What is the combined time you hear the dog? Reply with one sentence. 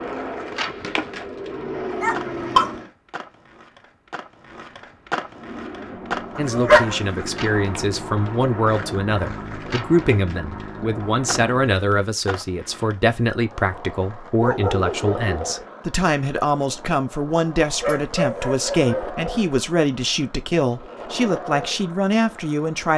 You can hear the dog for 4 seconds altogether.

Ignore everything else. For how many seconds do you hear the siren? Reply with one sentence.
The siren can't be heard in this clip.